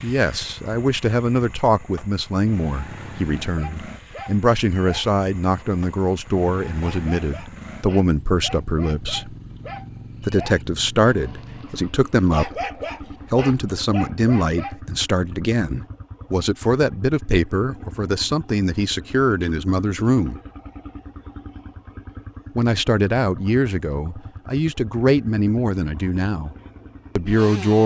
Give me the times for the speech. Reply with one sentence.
The speech can be heard from 0.0 to 9.3 s, from 10.2 to 12.7 s, from 13.3 to 20.4 s, from 22.6 to 26.6 s and from 27.1 to 27.8 s.